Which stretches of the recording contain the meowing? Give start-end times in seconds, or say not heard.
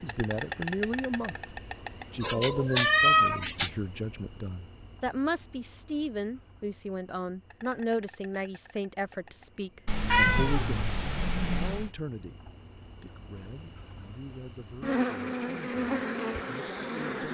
2.2-3.7, 9.8-11.9.